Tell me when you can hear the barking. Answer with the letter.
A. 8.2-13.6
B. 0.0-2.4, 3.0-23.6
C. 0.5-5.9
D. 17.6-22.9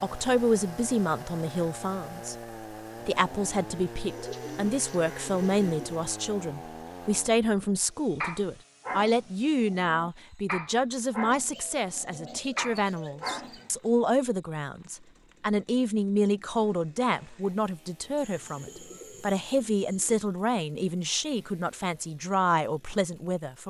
A.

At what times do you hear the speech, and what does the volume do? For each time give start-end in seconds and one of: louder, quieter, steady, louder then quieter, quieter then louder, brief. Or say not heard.
0.0-2.4 brief
3.0-23.6 steady.